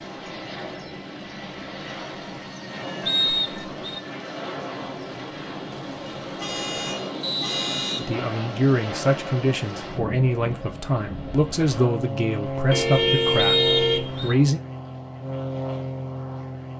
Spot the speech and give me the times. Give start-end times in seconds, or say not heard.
8.0-14.6.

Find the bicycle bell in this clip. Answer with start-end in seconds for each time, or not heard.
not heard.